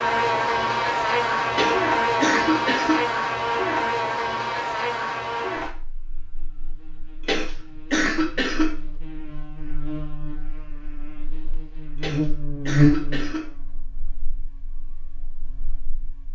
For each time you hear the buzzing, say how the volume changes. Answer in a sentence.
The buzzing can be heard from 0.0 to 16.2 s, getting quieter then louder.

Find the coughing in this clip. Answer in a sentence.
The coughing can be heard from 1.5 to 3.0 s, from 7.2 to 8.8 s and from 11.9 to 13.5 s.